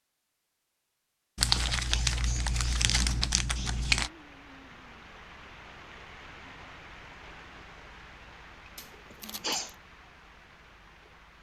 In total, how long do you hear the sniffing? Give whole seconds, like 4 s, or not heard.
3 s.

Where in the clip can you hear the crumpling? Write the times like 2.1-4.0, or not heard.
1.4-4.1, 8.8-9.6.